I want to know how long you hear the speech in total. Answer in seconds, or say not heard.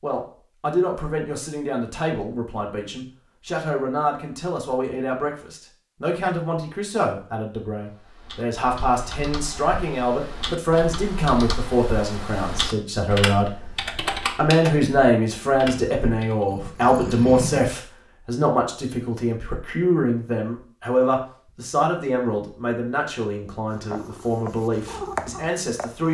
25 s.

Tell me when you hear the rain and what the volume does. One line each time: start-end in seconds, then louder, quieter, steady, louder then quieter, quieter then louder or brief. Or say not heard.
not heard.